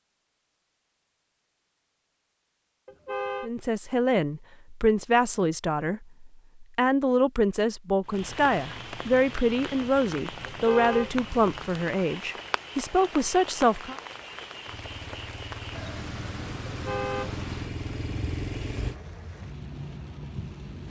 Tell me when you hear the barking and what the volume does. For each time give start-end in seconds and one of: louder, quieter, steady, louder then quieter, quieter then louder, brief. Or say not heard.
not heard.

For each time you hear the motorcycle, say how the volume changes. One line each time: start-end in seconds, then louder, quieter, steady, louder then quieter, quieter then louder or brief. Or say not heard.
14.7-19.0 louder.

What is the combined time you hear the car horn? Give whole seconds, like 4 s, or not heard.
2 s.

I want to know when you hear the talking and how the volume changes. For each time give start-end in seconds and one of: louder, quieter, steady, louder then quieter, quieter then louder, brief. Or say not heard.
3.4-13.9 steady.